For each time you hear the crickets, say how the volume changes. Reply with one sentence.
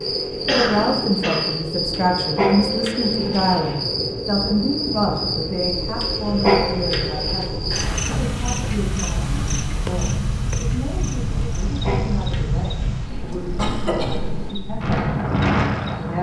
You can hear the crickets from 0.0 to 16.1 s, getting quieter.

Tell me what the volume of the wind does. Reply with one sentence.
The volume of the wind goes up.